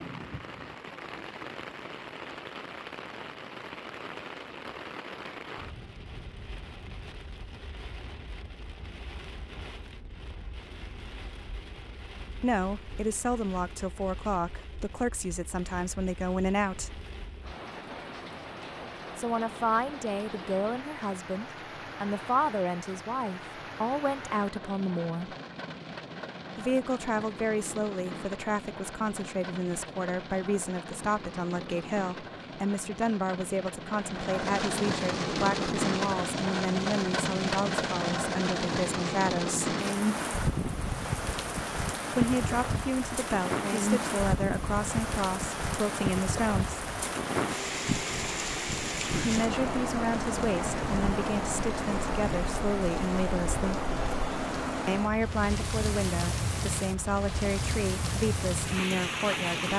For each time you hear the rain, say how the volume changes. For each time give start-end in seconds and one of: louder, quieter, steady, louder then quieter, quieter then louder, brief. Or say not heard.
0.0-59.7 louder.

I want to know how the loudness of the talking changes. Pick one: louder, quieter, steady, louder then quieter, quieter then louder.
steady.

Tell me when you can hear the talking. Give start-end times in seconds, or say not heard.
12.3-17.0, 19.1-25.4, 26.6-39.8, 42.1-46.8, 49.2-53.9, 54.9-59.7.